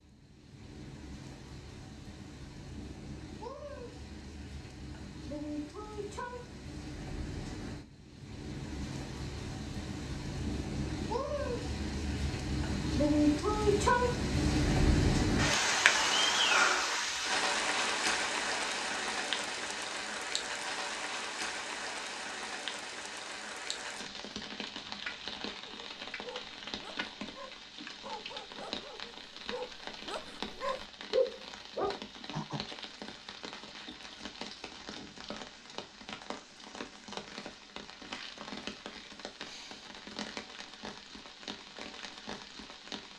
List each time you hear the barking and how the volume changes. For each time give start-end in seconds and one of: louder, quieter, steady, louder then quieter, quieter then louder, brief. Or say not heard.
25.6-32.6 louder.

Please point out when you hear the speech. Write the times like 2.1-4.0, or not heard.
not heard.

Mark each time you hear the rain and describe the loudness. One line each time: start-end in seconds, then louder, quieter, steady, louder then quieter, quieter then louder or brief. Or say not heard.
0.0-43.1 louder then quieter.